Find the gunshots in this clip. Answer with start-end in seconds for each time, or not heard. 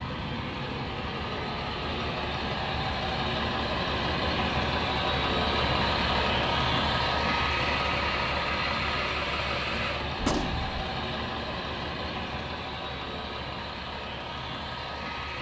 10.2-10.8.